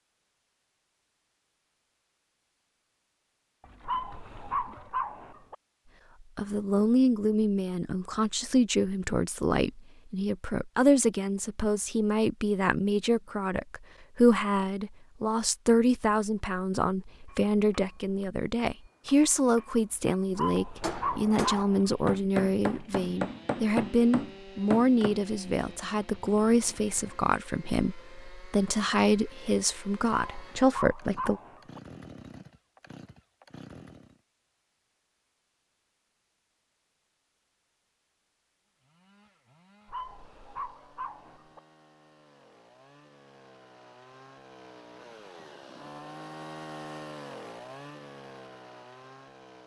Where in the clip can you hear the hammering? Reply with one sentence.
The hammering can be heard from 17.2 to 25.2 s.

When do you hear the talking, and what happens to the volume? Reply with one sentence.
The talking can be heard from 6.3 to 31.4 s, at a steady volume.